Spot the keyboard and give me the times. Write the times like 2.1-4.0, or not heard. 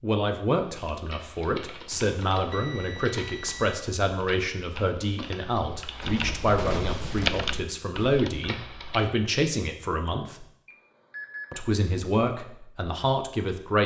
0.8-9.1.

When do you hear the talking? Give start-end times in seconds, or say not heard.
0.0-10.4, 11.5-13.8.